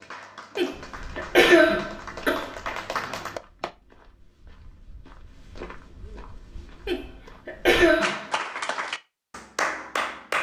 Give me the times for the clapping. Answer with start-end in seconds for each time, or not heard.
0.0-3.7, 8.0-10.3.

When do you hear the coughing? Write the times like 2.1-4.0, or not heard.
0.6-2.5, 6.8-8.2.